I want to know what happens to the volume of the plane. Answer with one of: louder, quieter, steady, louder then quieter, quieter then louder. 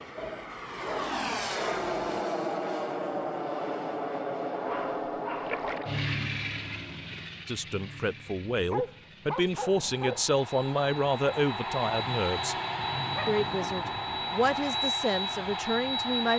quieter then louder.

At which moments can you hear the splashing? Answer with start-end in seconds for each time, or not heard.
5.5-6.0.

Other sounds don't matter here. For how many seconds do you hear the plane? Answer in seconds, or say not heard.
16 s.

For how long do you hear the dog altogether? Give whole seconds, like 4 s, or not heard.
7 s.